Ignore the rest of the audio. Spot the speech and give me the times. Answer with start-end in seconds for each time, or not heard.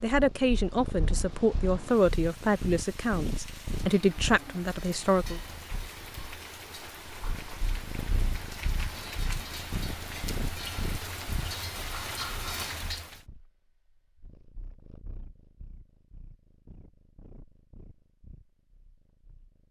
0.0-5.4.